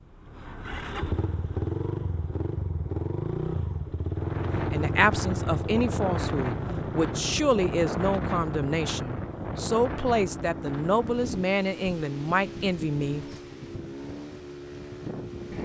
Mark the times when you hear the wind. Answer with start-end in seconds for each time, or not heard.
4.1-15.6.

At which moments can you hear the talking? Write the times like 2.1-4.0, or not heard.
4.7-13.2.